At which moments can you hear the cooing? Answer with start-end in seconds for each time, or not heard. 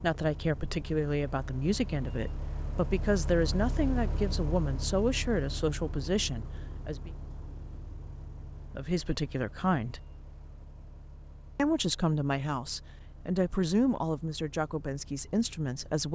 not heard.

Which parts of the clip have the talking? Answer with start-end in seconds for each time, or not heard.
0.0-7.1, 8.8-10.0, 11.6-16.1.